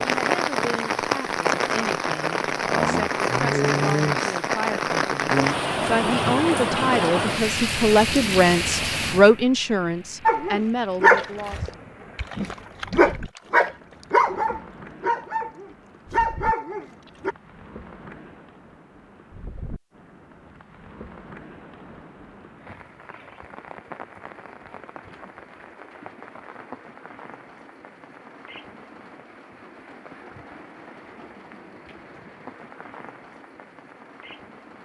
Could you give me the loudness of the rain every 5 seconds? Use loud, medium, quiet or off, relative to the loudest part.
loud, loud, quiet, quiet, quiet, quiet, quiet.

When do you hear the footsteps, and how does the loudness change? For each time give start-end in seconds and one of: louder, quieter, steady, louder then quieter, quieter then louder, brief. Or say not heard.
not heard.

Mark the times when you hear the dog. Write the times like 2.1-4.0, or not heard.
10.2-17.4.